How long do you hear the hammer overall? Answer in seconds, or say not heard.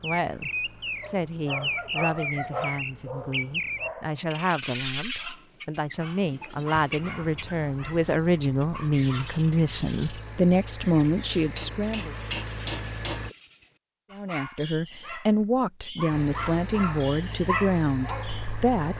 2 s.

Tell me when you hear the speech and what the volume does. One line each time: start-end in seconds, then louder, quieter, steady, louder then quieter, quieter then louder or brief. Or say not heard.
0.0-12.2 louder
14.1-18.9 steady.